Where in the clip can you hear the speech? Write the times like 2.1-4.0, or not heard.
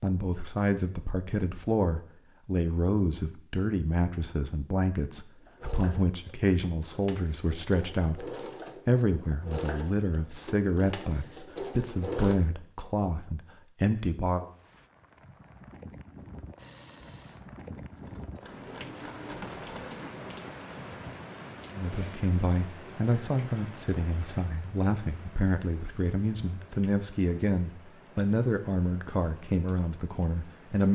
0.0-14.4, 21.7-30.9.